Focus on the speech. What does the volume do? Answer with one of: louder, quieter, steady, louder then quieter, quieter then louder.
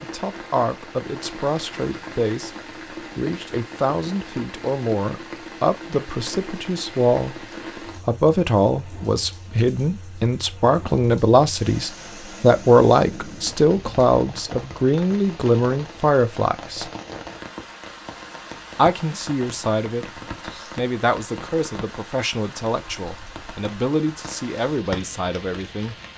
louder then quieter.